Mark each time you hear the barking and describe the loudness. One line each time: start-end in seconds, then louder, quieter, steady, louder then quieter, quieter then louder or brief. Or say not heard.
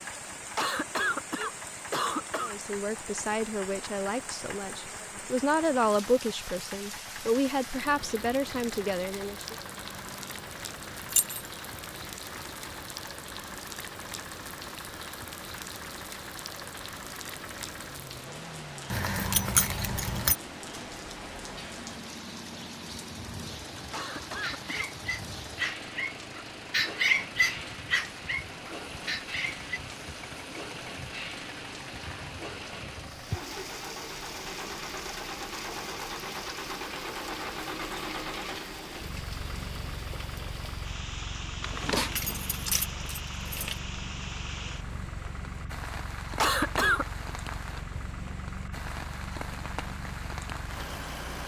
24.2-29.8 louder then quieter.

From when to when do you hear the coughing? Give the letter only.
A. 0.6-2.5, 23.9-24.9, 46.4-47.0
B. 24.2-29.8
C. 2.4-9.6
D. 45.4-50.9
A.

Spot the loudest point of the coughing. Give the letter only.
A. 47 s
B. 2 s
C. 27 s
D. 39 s
A.